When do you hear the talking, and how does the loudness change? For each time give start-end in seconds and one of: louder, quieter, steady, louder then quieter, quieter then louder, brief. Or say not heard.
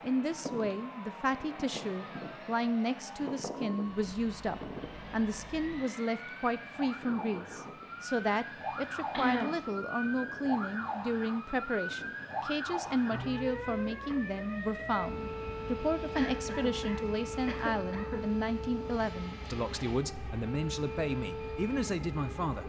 0.0-22.6 steady.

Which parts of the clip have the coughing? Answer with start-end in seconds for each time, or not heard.
9.1-9.6, 16.1-18.2.